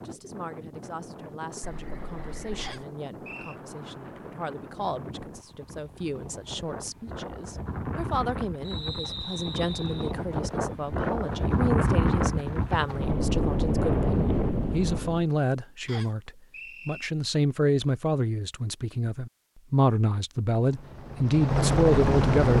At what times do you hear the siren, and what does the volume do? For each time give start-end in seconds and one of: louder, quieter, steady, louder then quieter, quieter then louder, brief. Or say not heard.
not heard.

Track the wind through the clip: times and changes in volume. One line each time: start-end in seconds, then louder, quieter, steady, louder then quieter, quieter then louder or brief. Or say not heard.
0.0-15.2 louder.